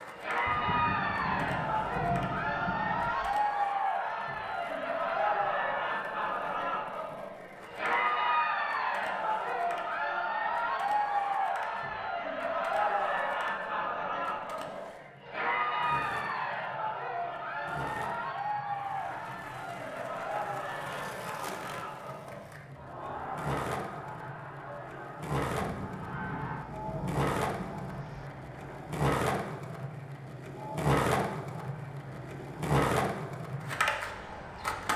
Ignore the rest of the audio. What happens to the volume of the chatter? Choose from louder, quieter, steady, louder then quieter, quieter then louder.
quieter.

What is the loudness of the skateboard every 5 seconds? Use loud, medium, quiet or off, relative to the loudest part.
quiet, quiet, quiet, quiet, medium, loud, loud.